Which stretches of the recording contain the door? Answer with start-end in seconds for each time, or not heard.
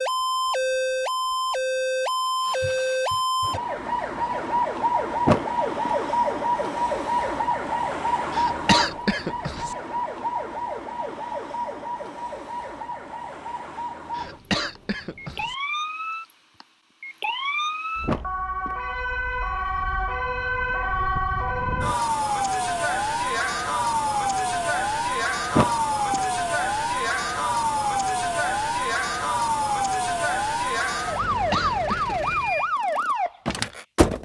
5.2-6.0, 18.1-18.8, 25.6-26.2.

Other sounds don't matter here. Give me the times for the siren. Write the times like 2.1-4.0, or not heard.
0.0-34.2.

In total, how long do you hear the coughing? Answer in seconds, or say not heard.
4 s.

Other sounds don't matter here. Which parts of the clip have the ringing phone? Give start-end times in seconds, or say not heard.
not heard.